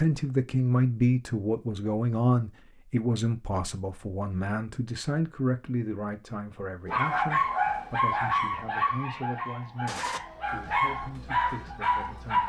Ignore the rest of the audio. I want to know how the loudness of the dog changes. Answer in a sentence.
The volume of the dog goes down, then up.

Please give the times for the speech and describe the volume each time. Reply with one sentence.
The speech can be heard from 0.0 to 12.4 s, getting quieter.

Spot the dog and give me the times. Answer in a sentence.
You can hear the dog from 6.8 to 12.4 s.